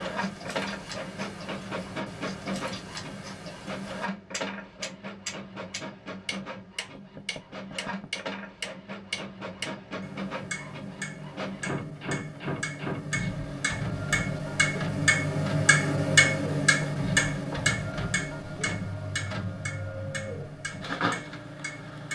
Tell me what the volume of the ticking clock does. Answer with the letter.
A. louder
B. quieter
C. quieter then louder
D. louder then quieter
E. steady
D.